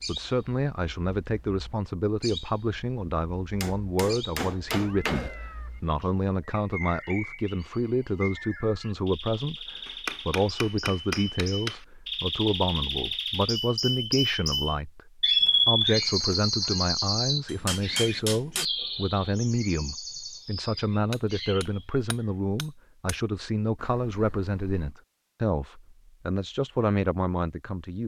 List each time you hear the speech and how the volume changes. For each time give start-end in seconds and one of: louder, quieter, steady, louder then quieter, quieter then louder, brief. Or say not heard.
0.1-28.0 steady.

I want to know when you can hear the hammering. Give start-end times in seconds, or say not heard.
3.6-5.3, 9.8-11.8, 17.4-18.7, 21.1-23.1.